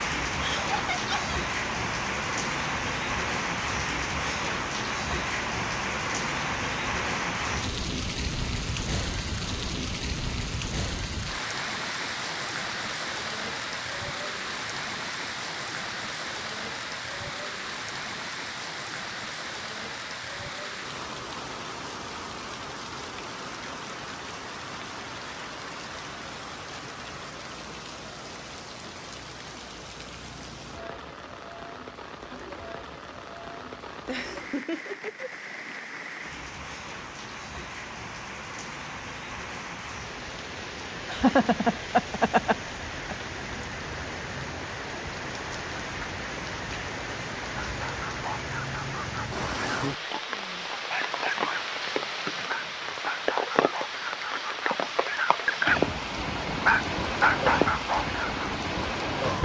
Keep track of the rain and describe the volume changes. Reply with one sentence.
The loudness of the rain goes down, then up.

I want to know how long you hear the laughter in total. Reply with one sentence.
The laughter can be heard for 4 seconds in total.